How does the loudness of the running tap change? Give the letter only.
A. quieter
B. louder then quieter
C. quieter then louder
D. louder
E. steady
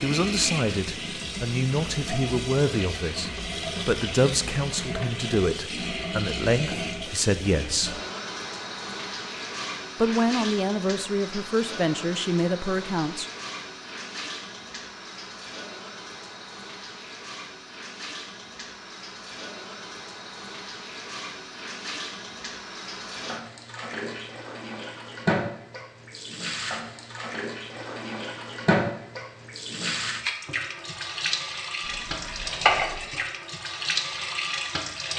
C.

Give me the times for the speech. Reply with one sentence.
The speech can be heard from 0.0 to 8.0 s and from 9.9 to 13.2 s.